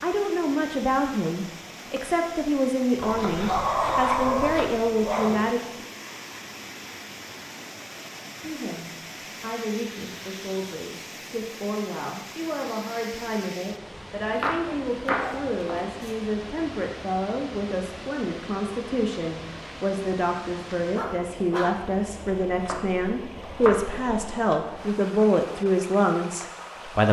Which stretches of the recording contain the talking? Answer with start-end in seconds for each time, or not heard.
0.0-5.8, 8.4-27.0.